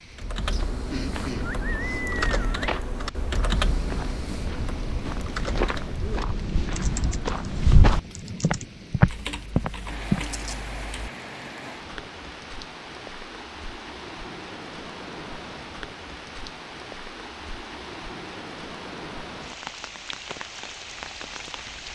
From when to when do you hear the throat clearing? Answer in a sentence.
You can hear the throat clearing from 0.7 to 2.0 s.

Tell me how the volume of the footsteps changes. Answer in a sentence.
The loudness of the footsteps goes up.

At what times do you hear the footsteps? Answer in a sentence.
You can hear the footsteps from 0.5 to 10.2 s.